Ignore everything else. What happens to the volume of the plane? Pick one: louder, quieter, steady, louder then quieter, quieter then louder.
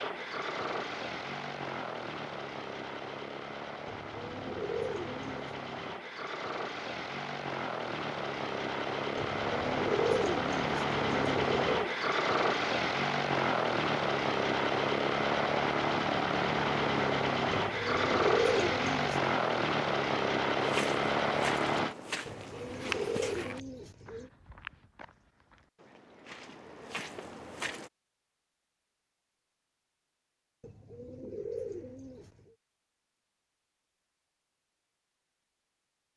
louder.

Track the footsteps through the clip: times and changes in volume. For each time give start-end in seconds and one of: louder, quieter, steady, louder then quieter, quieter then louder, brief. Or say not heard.
20.6-27.9 quieter then louder.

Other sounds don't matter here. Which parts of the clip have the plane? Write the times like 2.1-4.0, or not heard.
0.0-21.9.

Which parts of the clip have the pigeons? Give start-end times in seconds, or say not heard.
3.9-5.5, 9.2-11.9, 17.5-19.2, 22.2-24.3, 30.6-32.5.